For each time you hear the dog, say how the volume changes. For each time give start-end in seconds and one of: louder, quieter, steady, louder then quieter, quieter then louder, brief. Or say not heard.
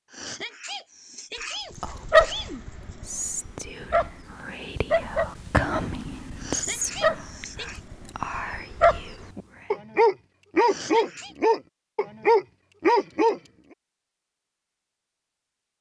1.8-13.4 quieter then louder.